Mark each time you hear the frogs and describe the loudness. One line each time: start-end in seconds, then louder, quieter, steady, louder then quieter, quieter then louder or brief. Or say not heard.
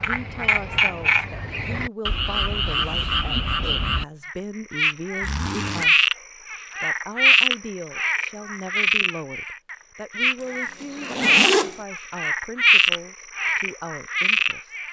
0.0-14.8 steady.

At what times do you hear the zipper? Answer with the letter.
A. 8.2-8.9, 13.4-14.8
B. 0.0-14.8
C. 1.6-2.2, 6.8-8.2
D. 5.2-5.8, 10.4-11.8
D.